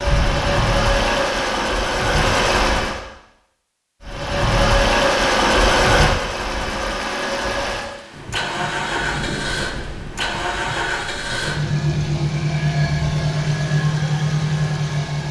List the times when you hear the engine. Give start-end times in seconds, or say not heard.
0.0-3.0, 4.0-15.2.